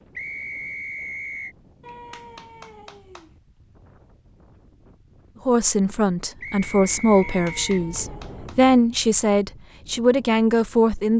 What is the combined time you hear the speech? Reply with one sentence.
You can hear the speech for 6 seconds altogether.